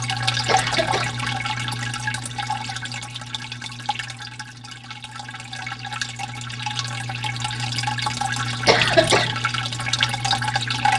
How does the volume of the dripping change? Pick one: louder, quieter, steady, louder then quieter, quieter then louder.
quieter then louder.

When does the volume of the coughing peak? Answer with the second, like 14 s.
9 s.